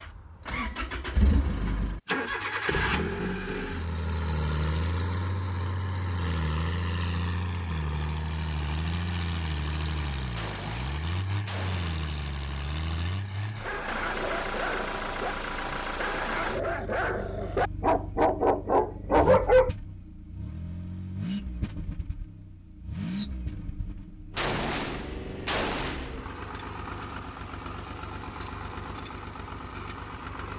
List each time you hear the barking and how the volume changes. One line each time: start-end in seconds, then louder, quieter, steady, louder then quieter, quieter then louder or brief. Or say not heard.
13.6-19.7 louder.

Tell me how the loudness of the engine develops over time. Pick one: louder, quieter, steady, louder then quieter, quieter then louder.
quieter.